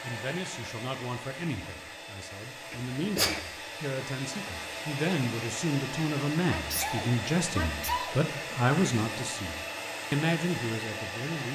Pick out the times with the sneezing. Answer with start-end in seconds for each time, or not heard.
2.7-3.4, 6.5-8.2.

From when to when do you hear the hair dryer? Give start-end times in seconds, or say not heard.
0.0-11.5.